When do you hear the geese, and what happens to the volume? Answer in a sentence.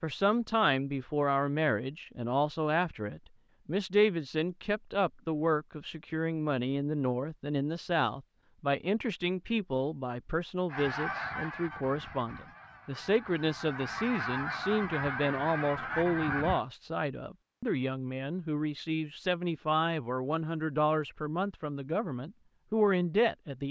The geese can be heard from 10.7 to 16.6 s, getting quieter then louder.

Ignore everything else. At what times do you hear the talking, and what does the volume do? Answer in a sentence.
The talking can be heard from 0.0 to 23.6 s, at a steady volume.